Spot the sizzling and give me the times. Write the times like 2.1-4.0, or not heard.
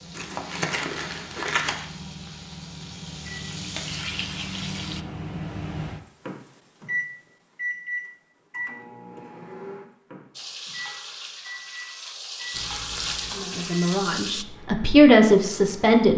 0.0-5.0, 10.3-14.4.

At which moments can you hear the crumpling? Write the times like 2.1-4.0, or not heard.
0.1-1.9, 12.5-13.6.